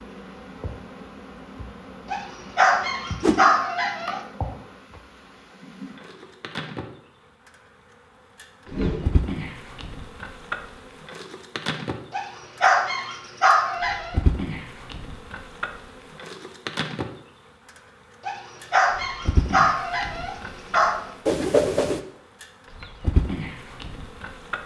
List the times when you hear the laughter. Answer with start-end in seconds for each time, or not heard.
not heard.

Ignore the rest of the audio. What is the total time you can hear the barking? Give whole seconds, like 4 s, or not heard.
7 s.